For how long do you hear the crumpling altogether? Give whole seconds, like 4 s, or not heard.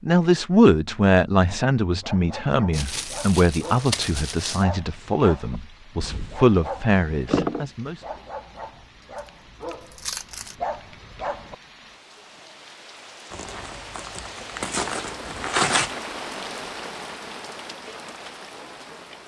6 s.